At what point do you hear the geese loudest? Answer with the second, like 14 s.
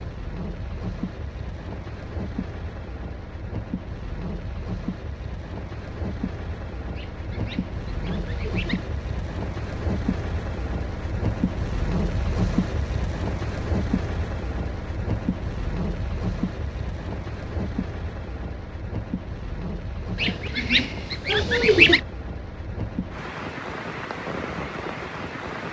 22 s.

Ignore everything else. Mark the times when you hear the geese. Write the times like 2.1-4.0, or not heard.
7.0-8.8, 20.1-22.0.